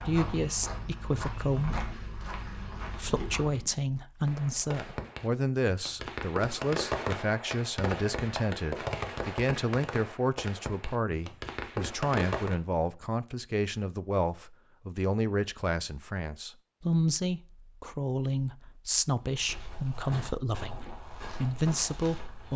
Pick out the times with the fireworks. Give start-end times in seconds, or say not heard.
4.2-12.6.